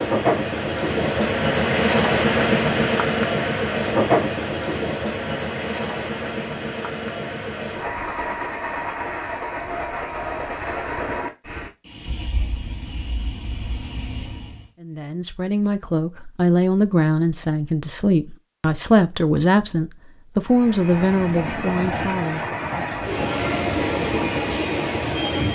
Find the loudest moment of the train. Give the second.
2 s.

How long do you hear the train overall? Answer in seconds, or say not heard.
20 s.